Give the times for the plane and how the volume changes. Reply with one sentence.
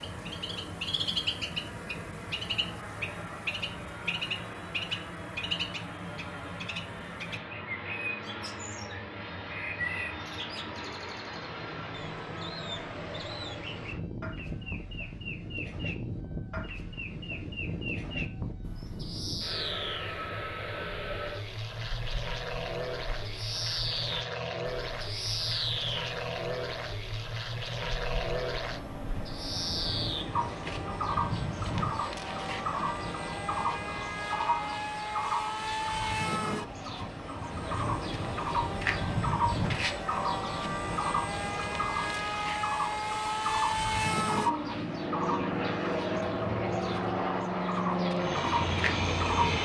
You can hear the plane from 0.0 to 49.5 s, getting louder.